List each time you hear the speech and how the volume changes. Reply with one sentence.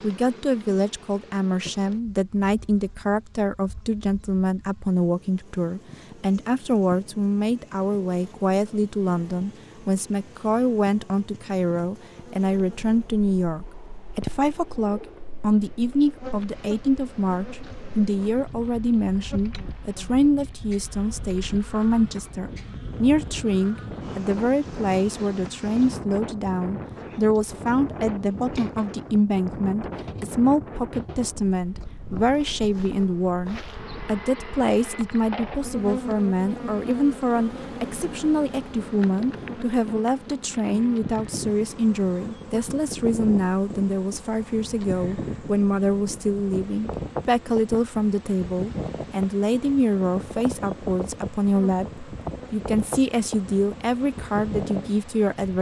You can hear the speech from 0.0 to 55.5 s, at a steady volume.